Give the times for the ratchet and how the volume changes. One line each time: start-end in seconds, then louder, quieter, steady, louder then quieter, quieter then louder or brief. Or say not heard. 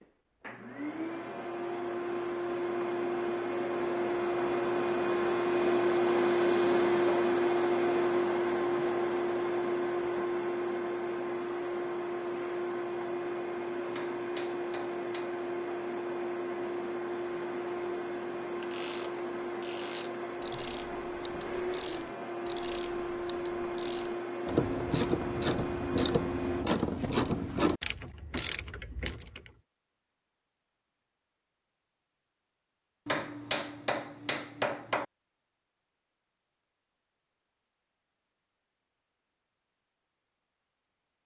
18.6-29.5 louder.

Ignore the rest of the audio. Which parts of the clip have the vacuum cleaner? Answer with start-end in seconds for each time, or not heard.
0.0-26.6.